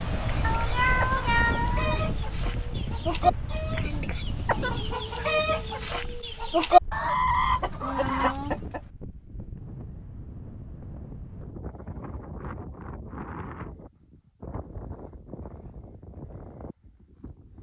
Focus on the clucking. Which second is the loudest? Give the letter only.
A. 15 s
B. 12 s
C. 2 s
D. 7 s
D.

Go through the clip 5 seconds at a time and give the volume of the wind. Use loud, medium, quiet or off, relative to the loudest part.
loud, medium, medium, quiet.